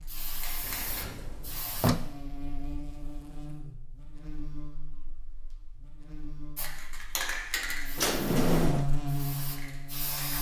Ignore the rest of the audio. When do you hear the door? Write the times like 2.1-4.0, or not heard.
0.7-2.0, 8.0-8.8.